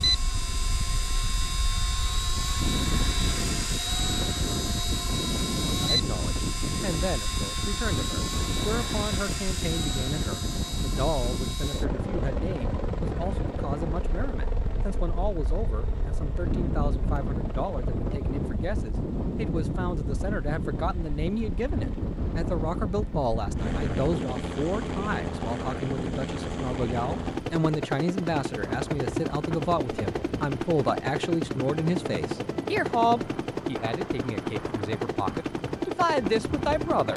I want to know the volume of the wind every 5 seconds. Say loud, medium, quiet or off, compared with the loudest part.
loud, loud, loud, loud, loud, medium, medium, medium.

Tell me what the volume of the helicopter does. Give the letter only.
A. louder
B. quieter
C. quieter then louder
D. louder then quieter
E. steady
C.